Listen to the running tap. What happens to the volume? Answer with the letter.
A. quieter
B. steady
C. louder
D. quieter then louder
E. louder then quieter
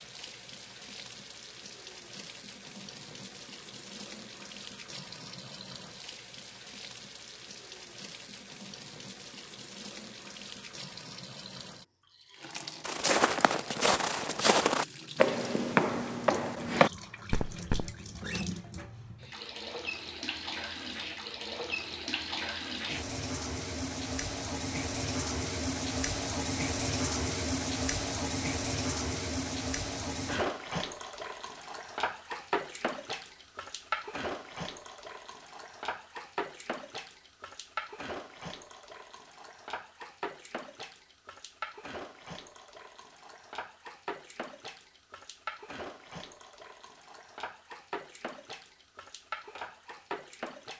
E.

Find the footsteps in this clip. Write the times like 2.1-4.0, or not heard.
12.8-17.9.